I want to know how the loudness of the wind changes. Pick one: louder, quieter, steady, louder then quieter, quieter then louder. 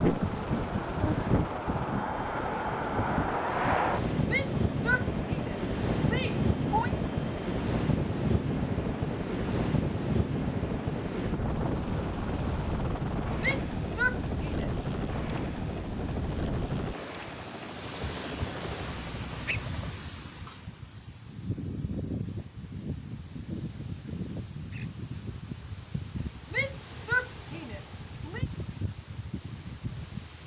quieter.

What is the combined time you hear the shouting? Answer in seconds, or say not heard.
6 s.